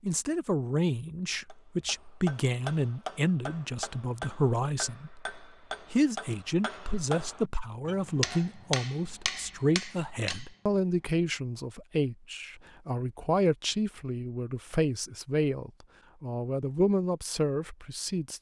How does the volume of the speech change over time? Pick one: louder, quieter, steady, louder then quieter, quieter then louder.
steady.